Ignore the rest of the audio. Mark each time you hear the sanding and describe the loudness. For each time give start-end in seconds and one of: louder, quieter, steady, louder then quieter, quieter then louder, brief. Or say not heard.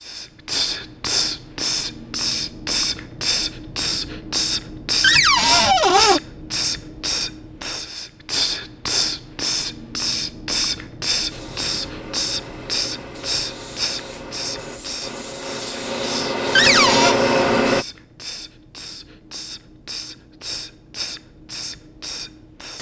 11.3-17.9 louder.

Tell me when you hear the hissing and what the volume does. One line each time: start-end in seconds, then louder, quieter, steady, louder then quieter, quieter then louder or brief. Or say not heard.
0.0-22.7 quieter.